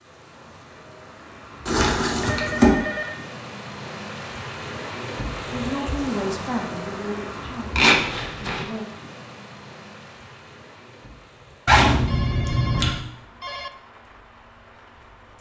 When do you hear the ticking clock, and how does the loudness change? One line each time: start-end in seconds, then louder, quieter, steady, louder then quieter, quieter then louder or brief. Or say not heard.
not heard.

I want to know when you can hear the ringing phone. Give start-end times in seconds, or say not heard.
2.1-3.3, 12.1-13.7.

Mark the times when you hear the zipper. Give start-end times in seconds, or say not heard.
1.6-2.7, 7.8-8.7, 11.7-12.9.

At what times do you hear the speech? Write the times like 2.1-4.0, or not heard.
5.5-8.8.